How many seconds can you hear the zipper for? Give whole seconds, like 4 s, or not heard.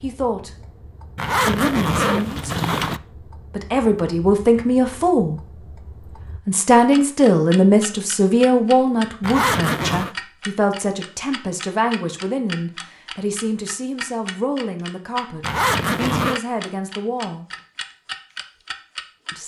4 s.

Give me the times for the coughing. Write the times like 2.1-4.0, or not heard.
not heard.